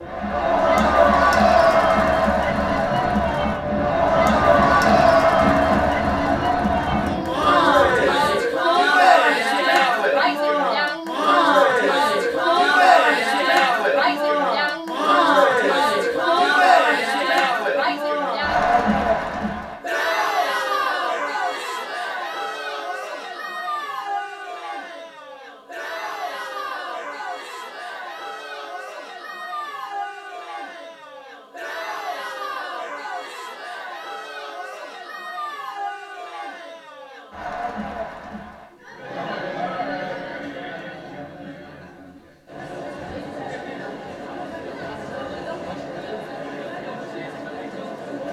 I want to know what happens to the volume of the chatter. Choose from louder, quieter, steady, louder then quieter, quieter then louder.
quieter.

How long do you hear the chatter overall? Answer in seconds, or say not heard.
48 s.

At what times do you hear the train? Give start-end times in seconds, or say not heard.
0.0-8.4.